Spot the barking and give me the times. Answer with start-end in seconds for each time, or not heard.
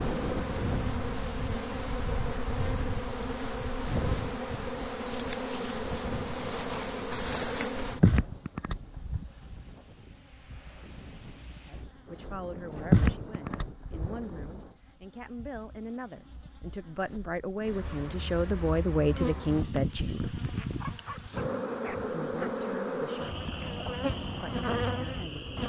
20.8-22.6.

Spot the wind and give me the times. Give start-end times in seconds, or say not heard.
0.0-14.8.